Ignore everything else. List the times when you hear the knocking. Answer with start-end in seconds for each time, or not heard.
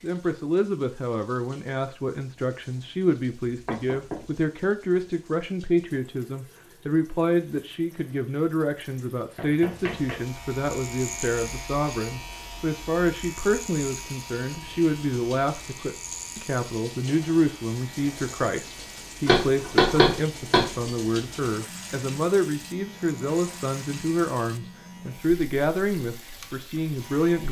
3.5-4.3, 9.3-10.2, 19.2-20.9.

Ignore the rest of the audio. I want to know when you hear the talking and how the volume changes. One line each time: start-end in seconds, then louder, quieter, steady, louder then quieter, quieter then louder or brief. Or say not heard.
0.0-27.4 steady.